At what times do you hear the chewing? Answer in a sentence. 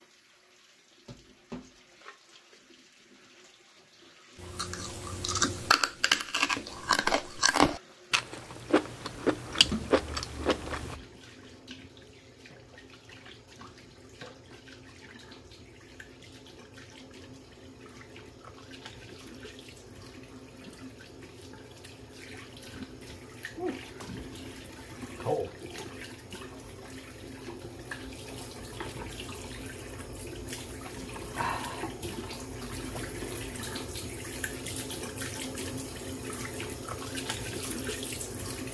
The chewing can be heard from 4.4 to 10.9 s.